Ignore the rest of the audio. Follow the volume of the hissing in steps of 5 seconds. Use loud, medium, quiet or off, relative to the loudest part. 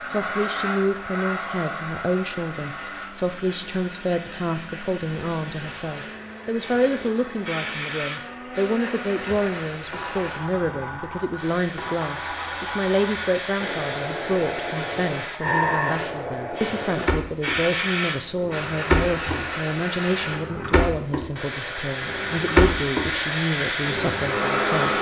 medium, medium, medium, loud, loud.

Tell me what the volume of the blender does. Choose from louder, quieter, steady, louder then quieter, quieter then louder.
louder.